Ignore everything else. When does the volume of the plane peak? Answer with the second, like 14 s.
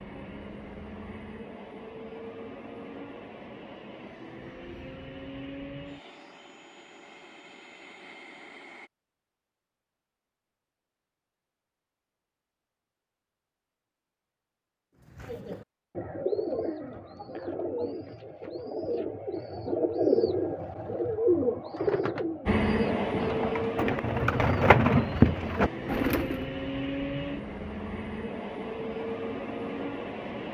23 s.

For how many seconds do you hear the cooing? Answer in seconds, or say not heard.
11 s.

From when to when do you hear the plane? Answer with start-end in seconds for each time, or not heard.
0.0-8.9, 22.4-30.4.